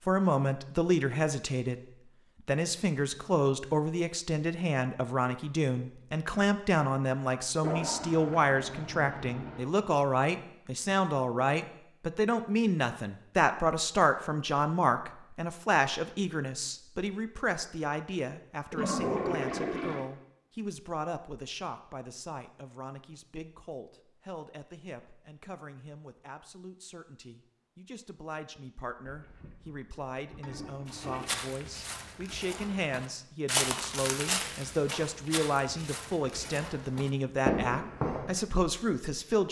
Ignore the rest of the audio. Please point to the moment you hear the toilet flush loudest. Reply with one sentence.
The volume of the toilet flush peaks at 19 seconds.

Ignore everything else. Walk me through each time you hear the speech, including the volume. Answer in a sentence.
The speech can be heard from 0.1 to 39.4 s, getting quieter then louder.